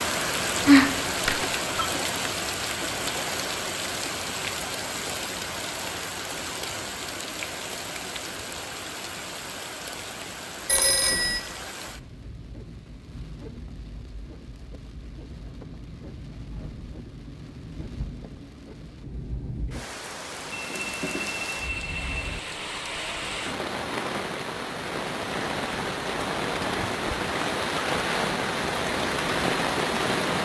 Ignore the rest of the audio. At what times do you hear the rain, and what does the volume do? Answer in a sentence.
You can hear the rain from 0.0 to 30.3 s, getting quieter then louder.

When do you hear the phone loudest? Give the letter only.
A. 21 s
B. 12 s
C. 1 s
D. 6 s
C.